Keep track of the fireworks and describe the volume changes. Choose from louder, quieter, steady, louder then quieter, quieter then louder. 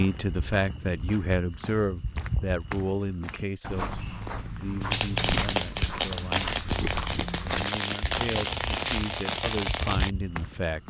steady.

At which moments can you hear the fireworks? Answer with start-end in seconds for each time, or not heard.
4.8-10.1.